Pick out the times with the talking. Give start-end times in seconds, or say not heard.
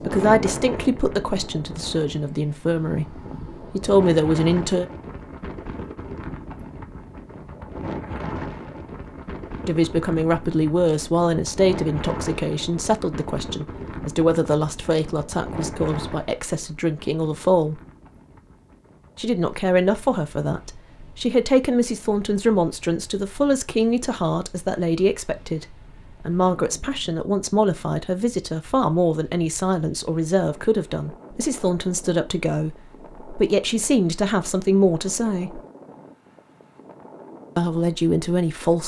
0.0-4.8, 9.7-17.8, 19.1-35.6, 37.5-38.8.